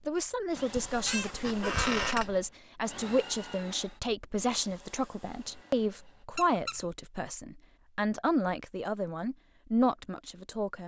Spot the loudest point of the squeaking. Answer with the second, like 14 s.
2 s.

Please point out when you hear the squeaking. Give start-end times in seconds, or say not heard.
0.8-2.4, 6.3-6.8.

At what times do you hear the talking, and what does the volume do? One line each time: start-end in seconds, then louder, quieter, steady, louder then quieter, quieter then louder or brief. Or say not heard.
0.1-10.8 steady.